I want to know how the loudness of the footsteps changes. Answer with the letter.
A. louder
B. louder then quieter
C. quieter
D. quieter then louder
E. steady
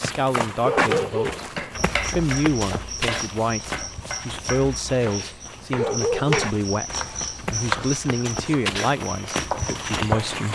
D.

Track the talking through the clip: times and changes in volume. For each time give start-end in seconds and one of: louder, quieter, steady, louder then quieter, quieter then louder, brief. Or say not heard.
0.0-10.5 steady.